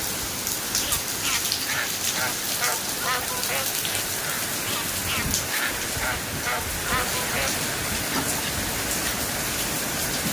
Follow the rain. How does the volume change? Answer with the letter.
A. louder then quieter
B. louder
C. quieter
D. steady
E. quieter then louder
D.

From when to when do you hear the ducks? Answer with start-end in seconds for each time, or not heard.
0.8-8.7.